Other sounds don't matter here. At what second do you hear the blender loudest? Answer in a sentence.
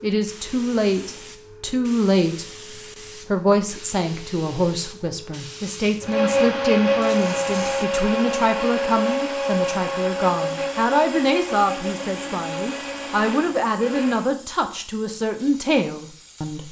The volume of the blender peaks at 7 seconds.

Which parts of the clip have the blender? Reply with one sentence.
The blender can be heard from 6.0 to 14.2 s.